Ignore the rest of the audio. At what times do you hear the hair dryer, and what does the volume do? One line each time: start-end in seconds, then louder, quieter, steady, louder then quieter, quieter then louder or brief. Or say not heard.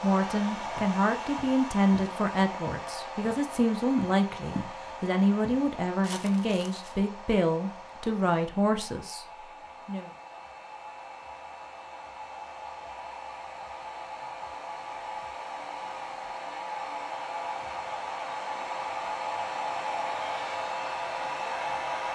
0.0-22.0 quieter then louder.